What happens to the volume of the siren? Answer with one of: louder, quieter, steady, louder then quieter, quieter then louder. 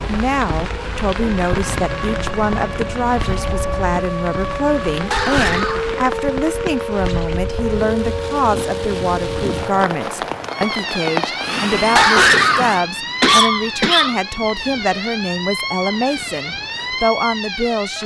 steady.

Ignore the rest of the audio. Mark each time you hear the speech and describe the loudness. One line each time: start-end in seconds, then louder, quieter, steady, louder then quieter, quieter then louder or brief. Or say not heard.
0.0-18.0 steady.